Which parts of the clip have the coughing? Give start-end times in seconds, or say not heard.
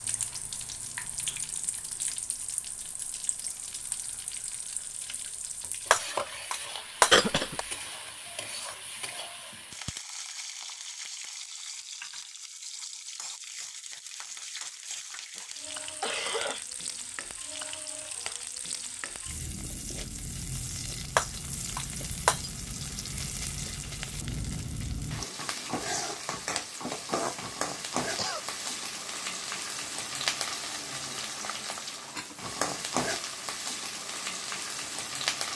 7.1-7.5, 15.3-16.6, 28.1-28.6.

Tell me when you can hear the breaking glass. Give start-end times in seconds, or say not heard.
5.9-7.7, 21.1-22.5.